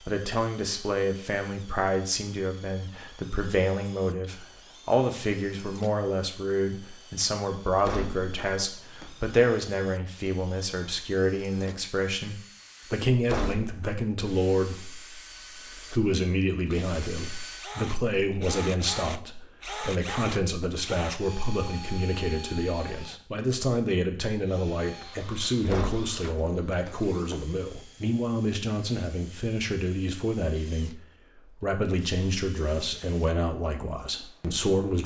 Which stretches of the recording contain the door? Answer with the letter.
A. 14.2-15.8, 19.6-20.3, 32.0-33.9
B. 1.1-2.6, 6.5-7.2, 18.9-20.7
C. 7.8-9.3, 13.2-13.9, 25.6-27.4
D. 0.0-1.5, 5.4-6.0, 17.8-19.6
C.